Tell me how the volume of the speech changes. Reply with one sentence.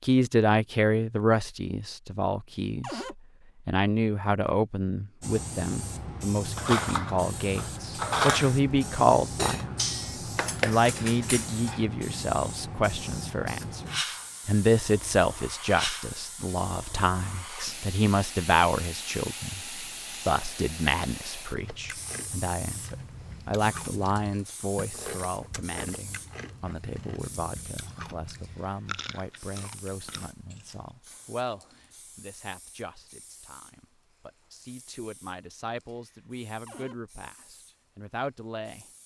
The loudness of the speech goes down.